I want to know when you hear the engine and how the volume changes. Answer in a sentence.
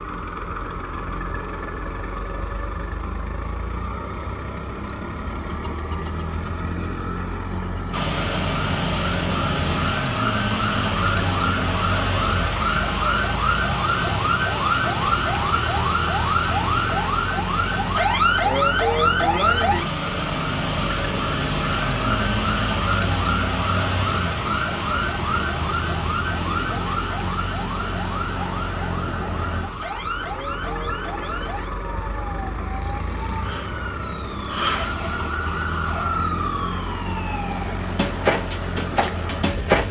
The engine can be heard from 0.0 to 39.8 s, at a steady volume.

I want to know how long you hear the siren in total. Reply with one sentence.
The siren can be heard for 32 seconds in total.